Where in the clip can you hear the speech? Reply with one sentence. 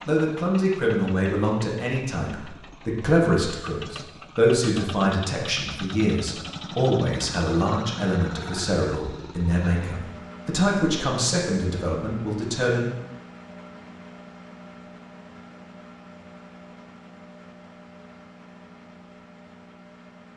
You can hear the speech from 0.1 to 12.9 s.